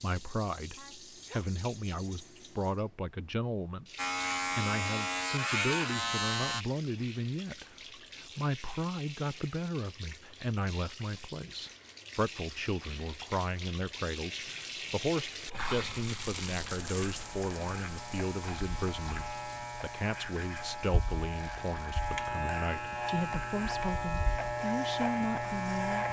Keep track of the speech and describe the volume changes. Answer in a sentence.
The loudness of the speech stays about the same.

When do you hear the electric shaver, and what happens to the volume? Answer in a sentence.
You can hear the electric shaver briefly from 4.0 to 6.7 s; and from 16.6 to 26.0 s, getting louder.